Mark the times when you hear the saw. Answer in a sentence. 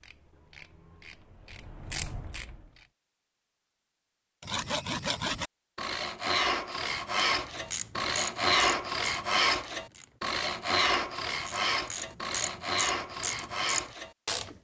The saw can be heard from 4.4 to 14.2 s.